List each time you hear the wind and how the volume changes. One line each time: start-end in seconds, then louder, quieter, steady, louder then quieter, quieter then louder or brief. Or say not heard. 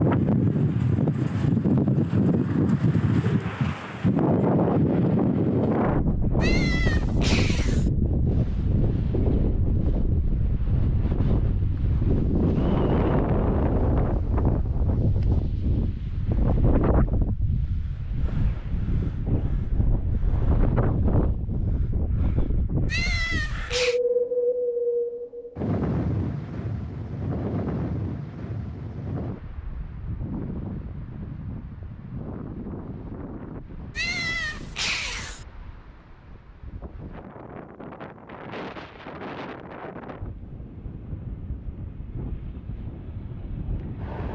0.0-44.3 quieter.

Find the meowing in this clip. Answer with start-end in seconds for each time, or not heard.
6.4-7.9, 22.9-24.0, 34.0-35.5.